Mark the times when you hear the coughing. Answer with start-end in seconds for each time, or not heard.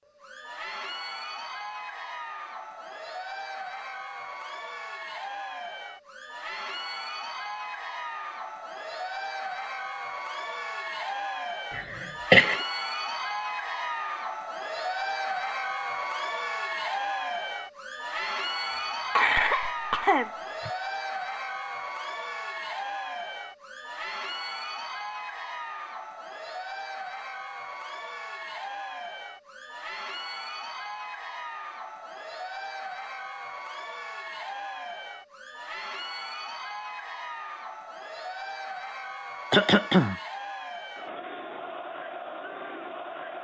11.8-12.6, 19.1-20.7, 39.5-40.1.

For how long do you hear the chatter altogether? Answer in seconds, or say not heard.
43 s.